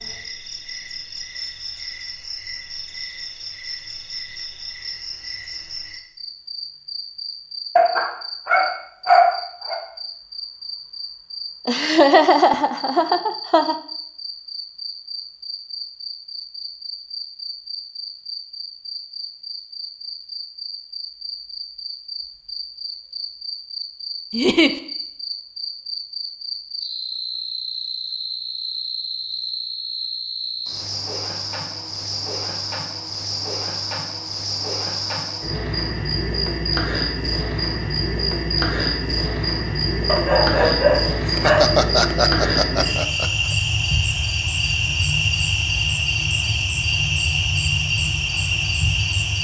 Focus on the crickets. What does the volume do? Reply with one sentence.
The volume of the crickets goes up.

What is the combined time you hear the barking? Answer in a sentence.
You can hear the barking for 4 seconds altogether.